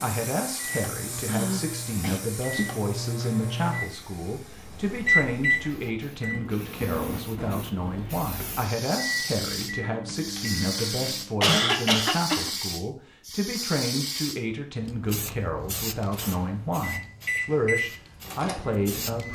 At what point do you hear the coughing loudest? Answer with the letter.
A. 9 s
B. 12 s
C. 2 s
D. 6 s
B.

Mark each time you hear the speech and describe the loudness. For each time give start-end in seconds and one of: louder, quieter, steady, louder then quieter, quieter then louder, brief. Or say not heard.
0.0-19.3 steady.